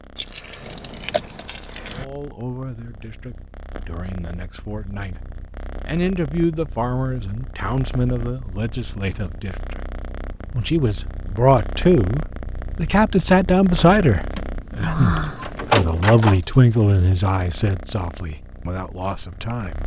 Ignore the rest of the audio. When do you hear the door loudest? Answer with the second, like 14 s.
16 s.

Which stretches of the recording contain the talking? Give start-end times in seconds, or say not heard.
1.9-9.8, 10.6-19.8.